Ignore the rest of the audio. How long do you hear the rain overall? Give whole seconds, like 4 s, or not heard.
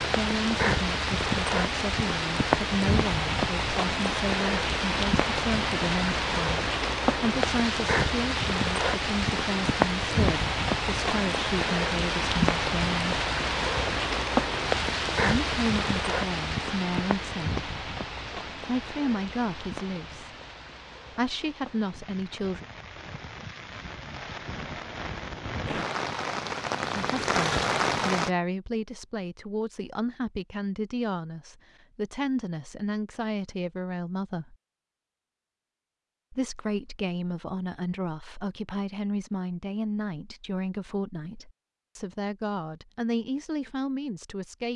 28 s.